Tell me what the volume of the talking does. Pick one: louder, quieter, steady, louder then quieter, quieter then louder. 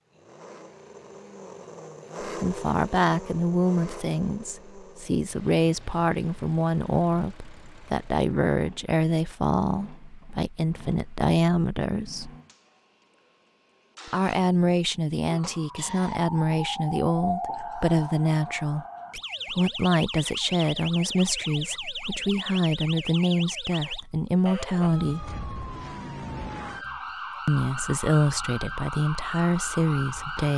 steady.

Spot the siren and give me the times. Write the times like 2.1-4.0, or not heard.
15.2-30.5.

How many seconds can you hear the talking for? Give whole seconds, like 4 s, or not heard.
24 s.